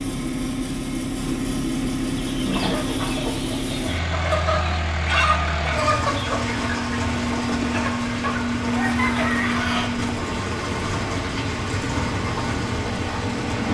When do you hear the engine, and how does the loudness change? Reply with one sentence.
You can hear the engine from 0.0 to 13.6 s, at a steady volume.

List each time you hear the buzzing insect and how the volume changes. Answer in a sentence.
The buzzing insect can't be heard in this clip.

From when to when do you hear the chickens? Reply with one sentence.
You can hear the chickens from 2.2 to 9.9 s.